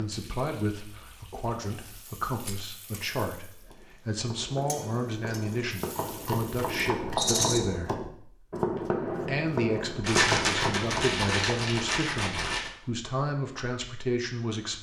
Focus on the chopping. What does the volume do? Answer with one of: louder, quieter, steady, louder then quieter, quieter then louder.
louder.